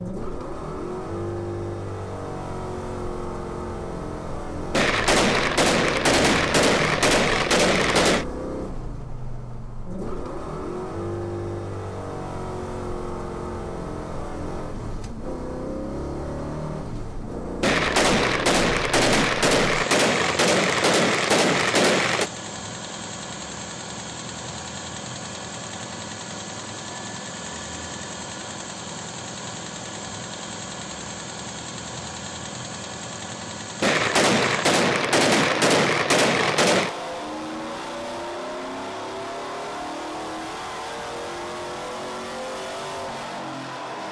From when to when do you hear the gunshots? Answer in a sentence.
You can hear the gunshots from 4.7 to 8.2 s, from 17.6 to 22.3 s and from 33.8 to 37.0 s.